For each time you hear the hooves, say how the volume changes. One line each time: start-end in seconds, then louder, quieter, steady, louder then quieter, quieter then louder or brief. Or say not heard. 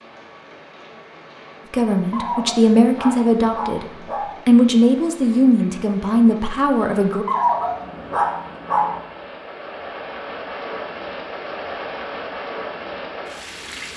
not heard.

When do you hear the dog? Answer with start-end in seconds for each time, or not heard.
2.1-4.5, 7.2-9.0.